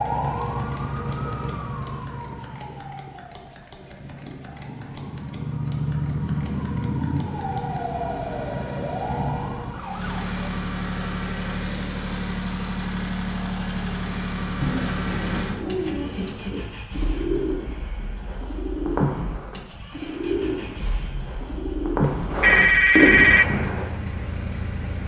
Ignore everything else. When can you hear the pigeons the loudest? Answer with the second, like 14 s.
23 s.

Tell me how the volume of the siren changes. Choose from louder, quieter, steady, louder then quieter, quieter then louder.
quieter then louder.